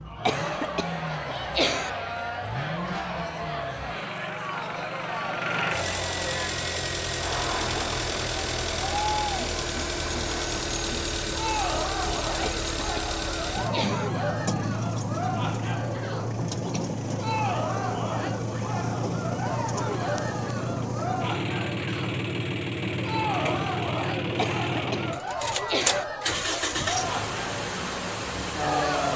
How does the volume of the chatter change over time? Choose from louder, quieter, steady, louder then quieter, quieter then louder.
steady.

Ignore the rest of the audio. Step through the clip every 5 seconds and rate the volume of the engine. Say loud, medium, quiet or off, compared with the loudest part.
medium, loud, loud, loud, loud, loud.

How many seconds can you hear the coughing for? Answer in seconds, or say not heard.
5 s.